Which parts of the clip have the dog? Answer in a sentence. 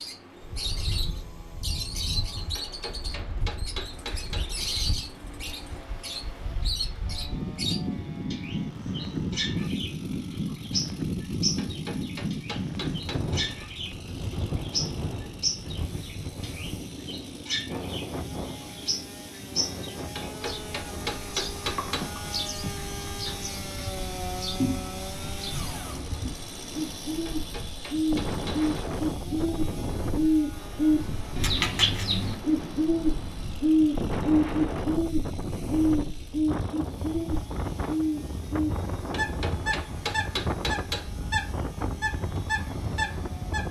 You can't hear the dog here.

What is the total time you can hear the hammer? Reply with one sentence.
The hammer can be heard for 9 seconds in total.